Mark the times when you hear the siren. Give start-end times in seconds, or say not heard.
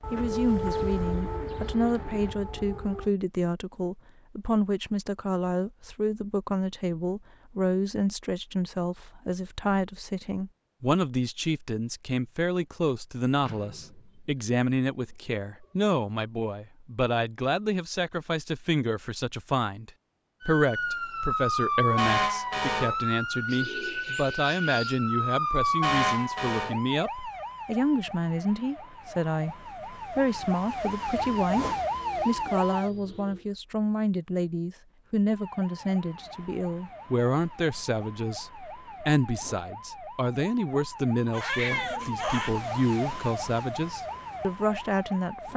0.0-3.1, 20.4-32.9, 35.3-45.5.